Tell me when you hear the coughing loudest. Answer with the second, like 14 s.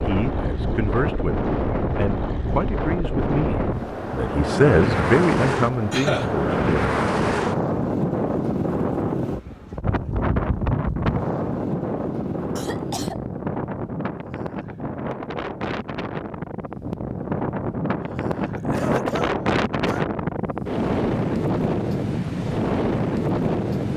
6 s.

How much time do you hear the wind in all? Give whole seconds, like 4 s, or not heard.
24 s.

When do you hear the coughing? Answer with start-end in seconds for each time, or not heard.
5.9-6.3, 12.6-13.2, 18.1-20.1.